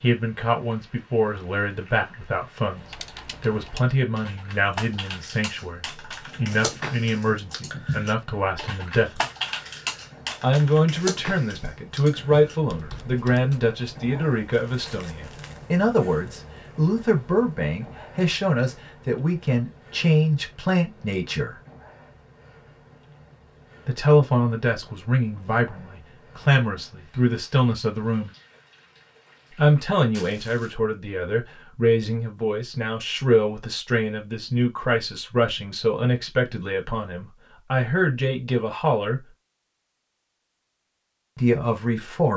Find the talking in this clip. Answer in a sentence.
The talking can be heard from 0.0 to 9.2 s, from 10.4 to 21.6 s, from 23.9 to 28.3 s, from 29.5 to 39.2 s and from 41.4 to 42.3 s.